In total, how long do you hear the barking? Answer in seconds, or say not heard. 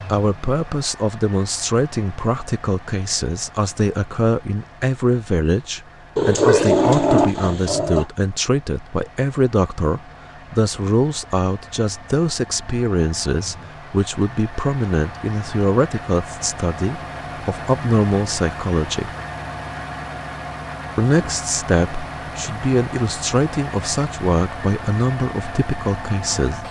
2 s.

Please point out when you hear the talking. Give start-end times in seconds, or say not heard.
0.1-19.1, 20.9-26.6.